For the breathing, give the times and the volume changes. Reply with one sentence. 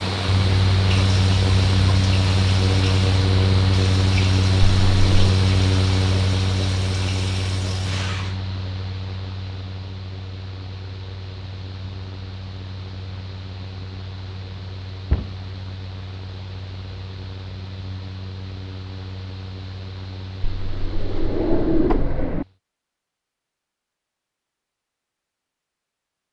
You can't hear the breathing here.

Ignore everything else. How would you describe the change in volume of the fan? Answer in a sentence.
The loudness of the fan goes down.